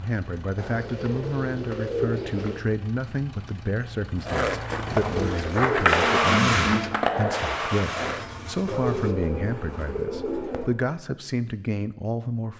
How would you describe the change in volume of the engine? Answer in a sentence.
The loudness of the engine goes up, then down.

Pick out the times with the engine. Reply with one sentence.
The engine can be heard from 0.0 to 9.2 s.